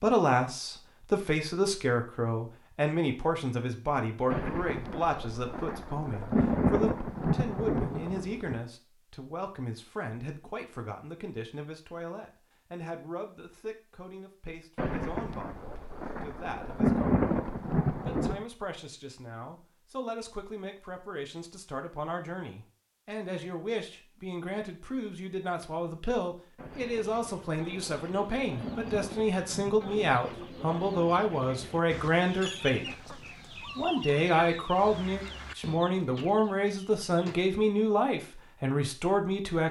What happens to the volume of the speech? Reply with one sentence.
The loudness of the speech goes down, then up.